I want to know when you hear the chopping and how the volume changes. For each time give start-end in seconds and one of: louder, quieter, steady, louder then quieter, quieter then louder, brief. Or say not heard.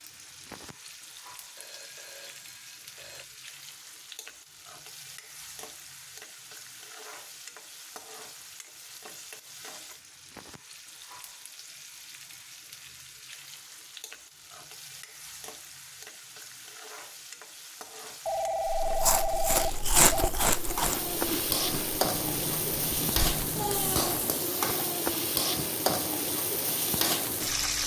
not heard.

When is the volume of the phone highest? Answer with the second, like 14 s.
19 s.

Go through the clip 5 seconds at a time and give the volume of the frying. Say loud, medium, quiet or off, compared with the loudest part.
quiet, quiet, quiet, quiet, loud, loud.